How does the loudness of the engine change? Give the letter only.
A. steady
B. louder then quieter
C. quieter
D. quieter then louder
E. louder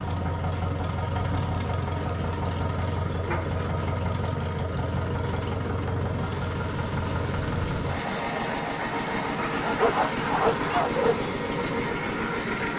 A.